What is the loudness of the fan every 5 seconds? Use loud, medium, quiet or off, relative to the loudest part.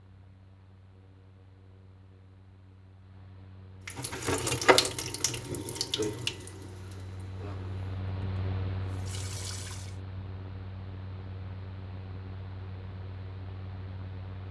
quiet, loud, loud.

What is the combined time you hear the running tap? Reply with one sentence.
The running tap can be heard for 6 seconds in total.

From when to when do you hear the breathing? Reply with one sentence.
The breathing can't be heard in this clip.